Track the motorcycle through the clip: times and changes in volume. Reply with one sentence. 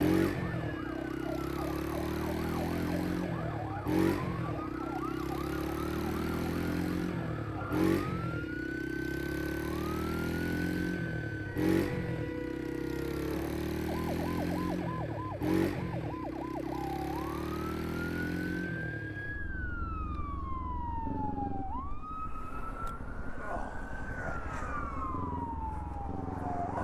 The motorcycle can be heard from 0.0 to 26.8 s, getting quieter.